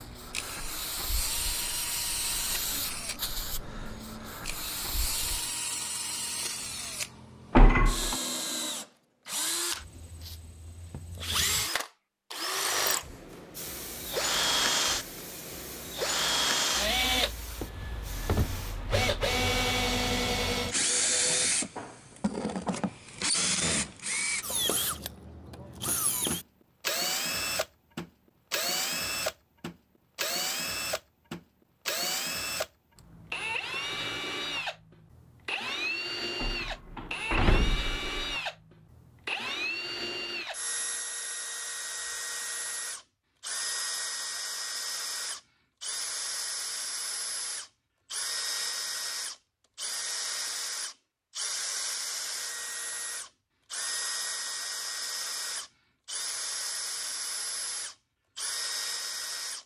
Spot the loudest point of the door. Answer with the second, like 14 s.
8 s.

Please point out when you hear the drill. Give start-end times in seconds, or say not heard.
0.0-59.6.